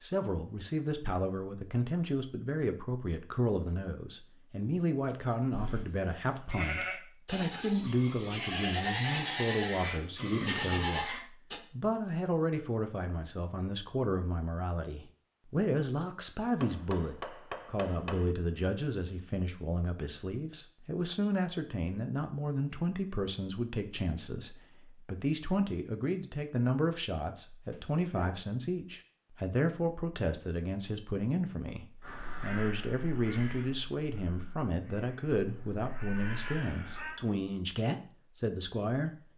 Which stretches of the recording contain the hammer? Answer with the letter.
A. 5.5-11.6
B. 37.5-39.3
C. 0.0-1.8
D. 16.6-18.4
D.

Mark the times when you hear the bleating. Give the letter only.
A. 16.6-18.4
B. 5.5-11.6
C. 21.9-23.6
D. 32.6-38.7
B.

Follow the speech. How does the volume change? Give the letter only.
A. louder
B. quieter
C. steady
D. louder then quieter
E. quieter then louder
C.